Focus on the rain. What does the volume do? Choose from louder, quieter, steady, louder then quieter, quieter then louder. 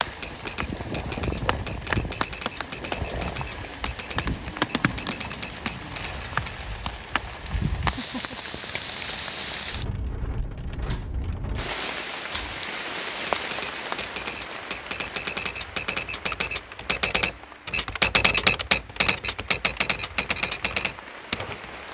quieter.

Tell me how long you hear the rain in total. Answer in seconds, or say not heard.
22 s.